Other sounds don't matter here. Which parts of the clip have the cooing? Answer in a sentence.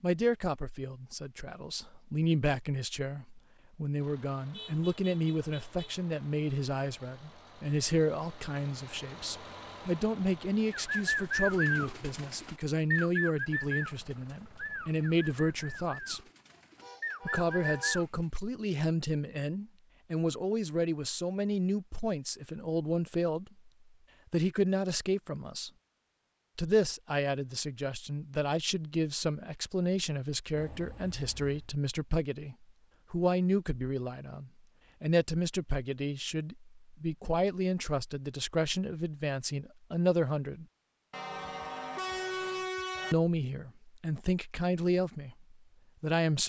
You can hear the cooing from 10.7 to 18.1 s.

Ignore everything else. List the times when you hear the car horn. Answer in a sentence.
You can hear the car horn from 4.5 to 6.0 s, from 16.8 to 18.0 s and from 41.1 to 43.1 s.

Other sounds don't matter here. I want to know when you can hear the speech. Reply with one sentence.
You can hear the speech from 0.0 to 16.2 s, from 17.2 to 23.7 s, from 24.3 to 25.7 s, from 26.6 to 40.6 s and from 43.1 to 46.4 s.